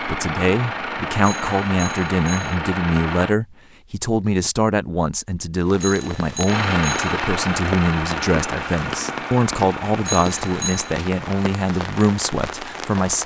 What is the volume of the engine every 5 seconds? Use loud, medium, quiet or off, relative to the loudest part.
loud, loud, medium.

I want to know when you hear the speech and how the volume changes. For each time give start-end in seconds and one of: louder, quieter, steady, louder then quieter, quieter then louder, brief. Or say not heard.
0.0-13.2 steady.